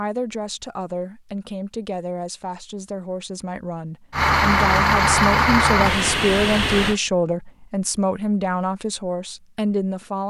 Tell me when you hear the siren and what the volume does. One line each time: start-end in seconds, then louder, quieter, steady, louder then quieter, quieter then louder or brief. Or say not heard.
not heard.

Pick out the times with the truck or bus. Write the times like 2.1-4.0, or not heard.
4.1-7.0.